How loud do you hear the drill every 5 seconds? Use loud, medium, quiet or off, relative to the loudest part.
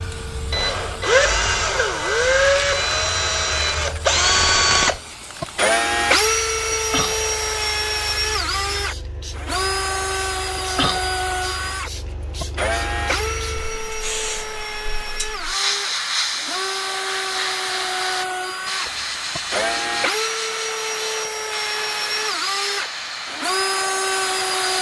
loud, loud, medium, medium, medium.